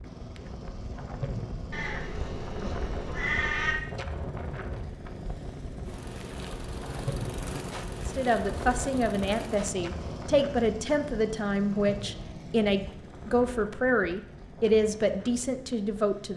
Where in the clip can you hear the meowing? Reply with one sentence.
You can hear the meowing from 1.7 to 3.8 s.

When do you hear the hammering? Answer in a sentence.
The hammering can't be heard in this clip.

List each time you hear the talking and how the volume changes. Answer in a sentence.
You can hear the talking from 8.1 to 16.3 s, at a steady volume.